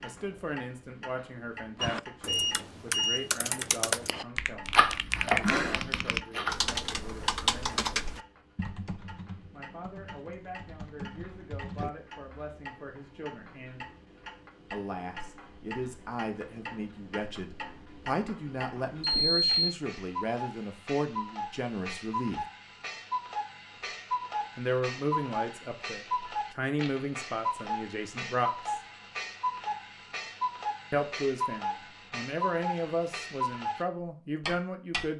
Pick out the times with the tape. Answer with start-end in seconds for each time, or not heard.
not heard.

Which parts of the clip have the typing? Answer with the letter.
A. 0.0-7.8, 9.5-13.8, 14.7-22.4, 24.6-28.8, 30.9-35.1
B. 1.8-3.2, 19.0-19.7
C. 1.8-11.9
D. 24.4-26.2
C.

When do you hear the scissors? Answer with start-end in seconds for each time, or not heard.
4.7-6.5.